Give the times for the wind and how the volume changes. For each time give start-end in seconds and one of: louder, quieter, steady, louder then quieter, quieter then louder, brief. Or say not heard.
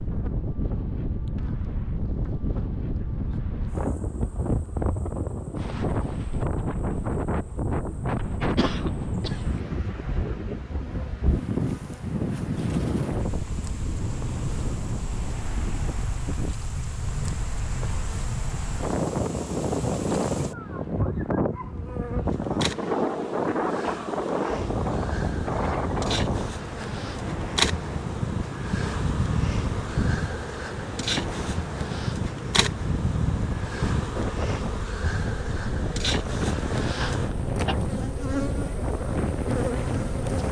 0.0-40.4 steady.